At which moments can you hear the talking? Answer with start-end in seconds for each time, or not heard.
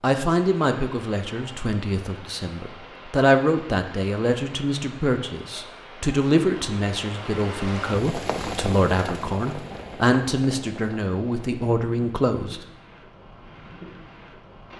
0.0-12.6.